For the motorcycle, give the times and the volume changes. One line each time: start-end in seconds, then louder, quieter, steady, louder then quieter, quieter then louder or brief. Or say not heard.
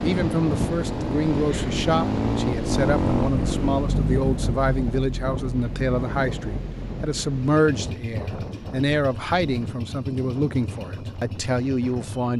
0.0-12.3 quieter.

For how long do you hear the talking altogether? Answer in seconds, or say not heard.
12 s.